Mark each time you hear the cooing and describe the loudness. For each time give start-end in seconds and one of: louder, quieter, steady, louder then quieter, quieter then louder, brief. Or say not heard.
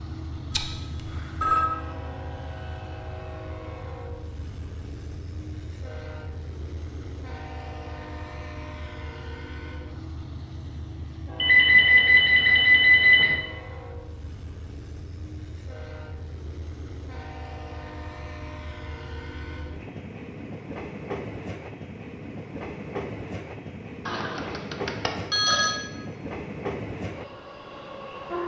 not heard.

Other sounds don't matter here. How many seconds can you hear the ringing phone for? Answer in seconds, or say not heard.
5 s.